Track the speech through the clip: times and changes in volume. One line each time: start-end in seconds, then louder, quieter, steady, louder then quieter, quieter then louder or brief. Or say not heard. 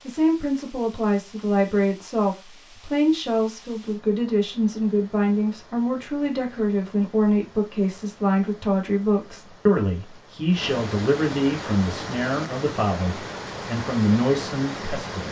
0.1-15.2 steady.